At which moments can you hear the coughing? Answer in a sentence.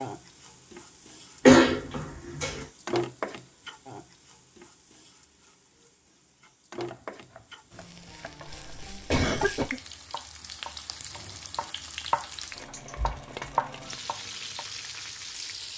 You can hear the coughing from 1.4 to 2.6 s and from 8.4 to 9.8 s.